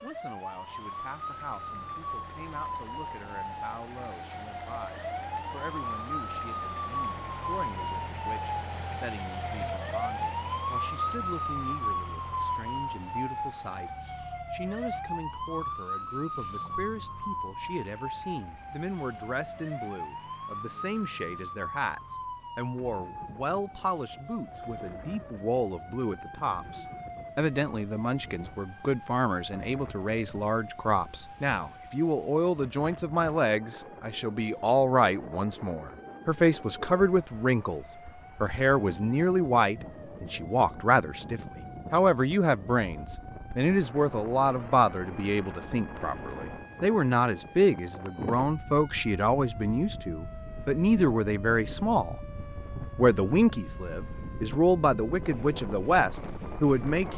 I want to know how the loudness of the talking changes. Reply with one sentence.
The loudness of the talking goes up.